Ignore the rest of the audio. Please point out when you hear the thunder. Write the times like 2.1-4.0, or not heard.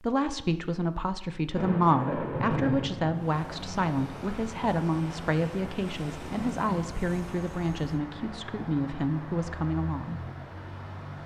1.6-3.2.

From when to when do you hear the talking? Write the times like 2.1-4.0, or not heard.
0.0-10.2.